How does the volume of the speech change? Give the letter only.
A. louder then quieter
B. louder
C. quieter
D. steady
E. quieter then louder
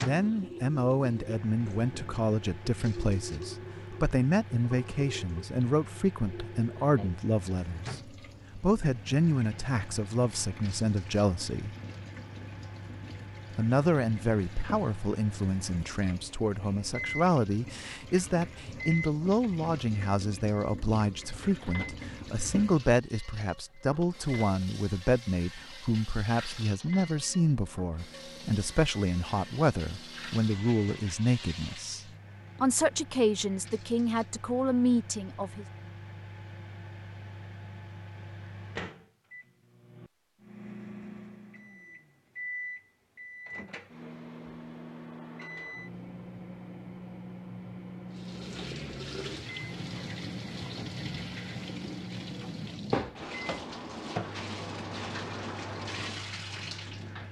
D.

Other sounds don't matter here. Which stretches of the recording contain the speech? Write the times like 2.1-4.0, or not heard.
0.0-11.7, 13.6-32.0, 32.6-35.6.